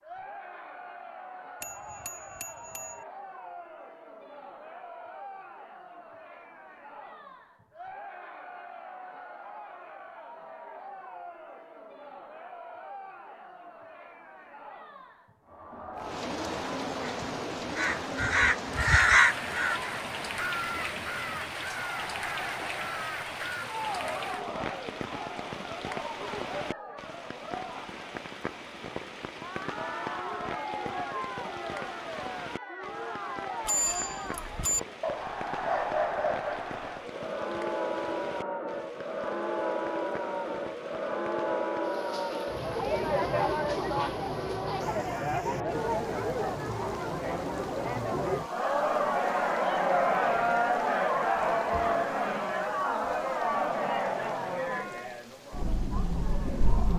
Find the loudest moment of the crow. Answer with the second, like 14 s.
19 s.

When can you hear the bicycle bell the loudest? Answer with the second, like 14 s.
34 s.